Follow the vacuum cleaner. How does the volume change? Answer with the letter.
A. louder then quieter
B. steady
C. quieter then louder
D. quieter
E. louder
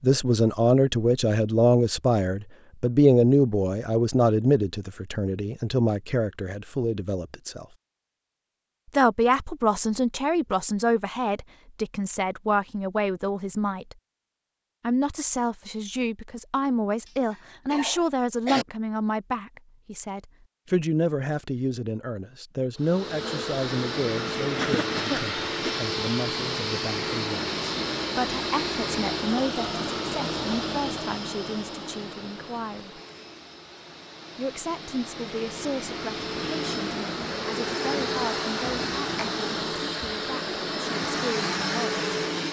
C.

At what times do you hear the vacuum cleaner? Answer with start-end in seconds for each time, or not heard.
22.8-42.4.